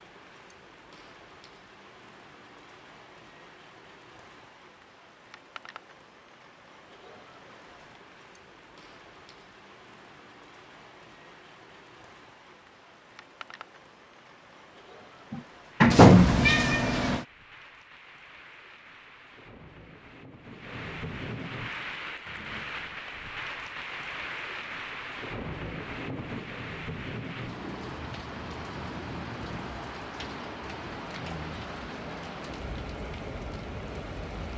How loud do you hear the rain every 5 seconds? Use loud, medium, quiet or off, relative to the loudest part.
quiet, quiet, quiet, quiet, loud, loud, loud.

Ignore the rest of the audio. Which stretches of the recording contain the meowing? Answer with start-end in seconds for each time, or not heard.
15.9-17.2.